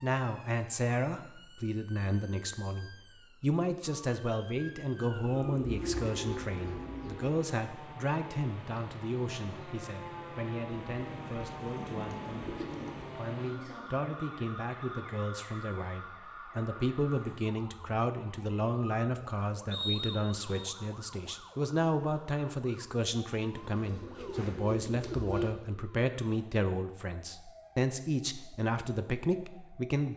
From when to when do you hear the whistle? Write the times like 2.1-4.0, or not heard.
19.7-20.6.